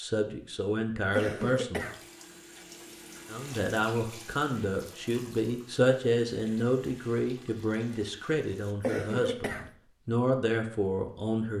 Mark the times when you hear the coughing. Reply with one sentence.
The coughing can be heard from 0.9 to 2.0 s and from 8.7 to 9.7 s.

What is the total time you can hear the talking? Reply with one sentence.
The talking can be heard for 10 seconds in total.